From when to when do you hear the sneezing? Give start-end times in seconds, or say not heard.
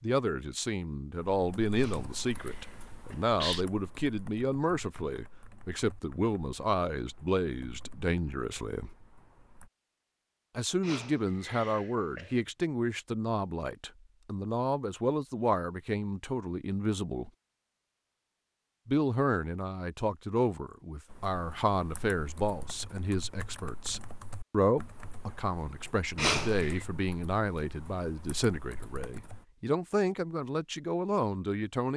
1.8-3.6, 10.8-12.4, 26.1-26.9.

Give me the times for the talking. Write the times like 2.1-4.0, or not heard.
0.0-8.9, 10.6-17.3, 18.9-31.9.